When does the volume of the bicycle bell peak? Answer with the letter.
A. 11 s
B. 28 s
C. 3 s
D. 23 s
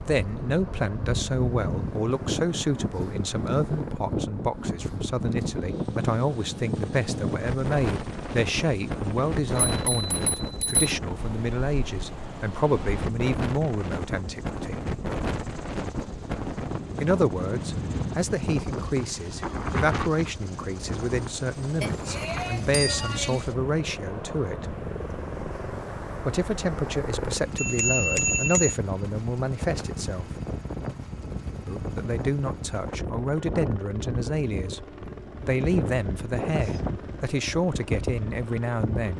B.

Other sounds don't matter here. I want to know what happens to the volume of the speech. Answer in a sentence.
The volume of the speech stays about the same.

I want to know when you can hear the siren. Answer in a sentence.
The siren can't be heard in this clip.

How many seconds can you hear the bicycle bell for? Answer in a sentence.
The bicycle bell can be heard for 4 seconds in total.